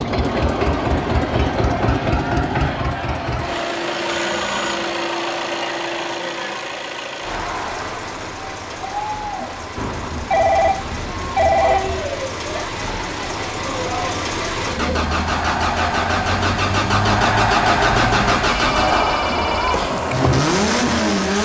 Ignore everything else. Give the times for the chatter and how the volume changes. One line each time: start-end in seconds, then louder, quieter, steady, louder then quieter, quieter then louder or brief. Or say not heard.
0.2-21.4 louder.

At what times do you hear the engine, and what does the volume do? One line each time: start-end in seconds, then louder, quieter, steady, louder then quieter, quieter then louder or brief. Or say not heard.
0.0-21.4 quieter then louder.